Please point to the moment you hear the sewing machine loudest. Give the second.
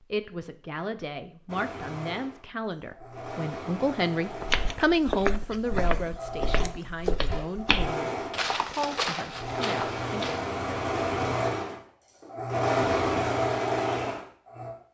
13 s.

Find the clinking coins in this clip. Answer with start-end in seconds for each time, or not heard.
not heard.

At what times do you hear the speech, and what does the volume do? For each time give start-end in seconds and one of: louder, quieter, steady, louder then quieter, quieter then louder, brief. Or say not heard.
0.0-10.3 louder then quieter.